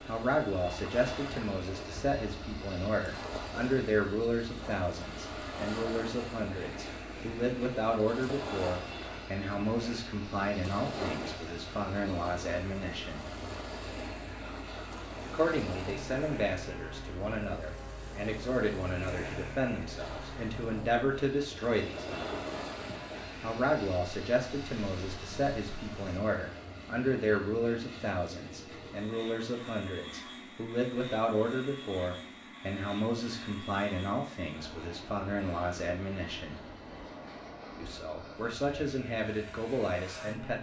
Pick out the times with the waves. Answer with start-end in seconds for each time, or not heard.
0.0-26.2.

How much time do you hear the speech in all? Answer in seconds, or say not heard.
36 s.